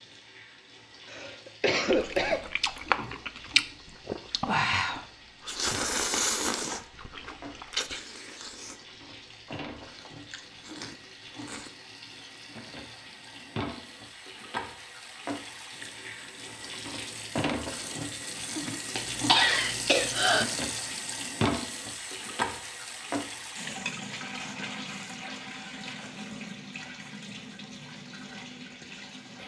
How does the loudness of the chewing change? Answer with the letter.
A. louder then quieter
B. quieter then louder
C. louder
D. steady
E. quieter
E.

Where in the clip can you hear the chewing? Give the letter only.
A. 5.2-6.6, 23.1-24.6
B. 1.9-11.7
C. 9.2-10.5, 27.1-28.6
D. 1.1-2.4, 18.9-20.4
B.